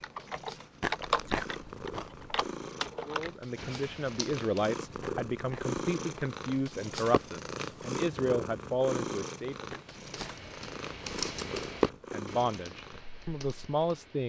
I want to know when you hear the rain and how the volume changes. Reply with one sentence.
The rain can't be heard in this clip.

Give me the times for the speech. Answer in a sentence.
The speech can be heard from 3.0 to 9.8 s and from 12.1 to 14.2 s.